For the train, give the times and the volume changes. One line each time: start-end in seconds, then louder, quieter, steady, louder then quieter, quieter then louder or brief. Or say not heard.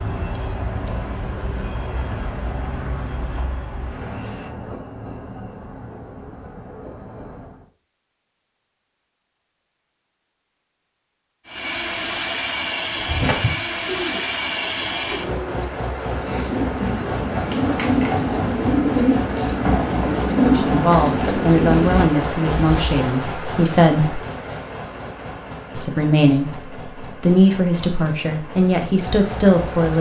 0.0-7.7 quieter
11.4-29.9 quieter.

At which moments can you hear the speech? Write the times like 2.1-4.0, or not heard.
20.4-24.2, 25.8-29.9.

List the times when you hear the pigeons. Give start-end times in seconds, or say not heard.
12.9-22.8.